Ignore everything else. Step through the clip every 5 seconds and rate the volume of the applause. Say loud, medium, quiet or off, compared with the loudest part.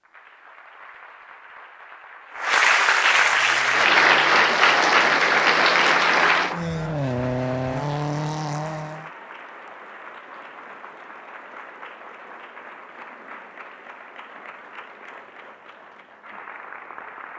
loud, loud, quiet, quiet.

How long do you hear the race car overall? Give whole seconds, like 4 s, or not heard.
6 s.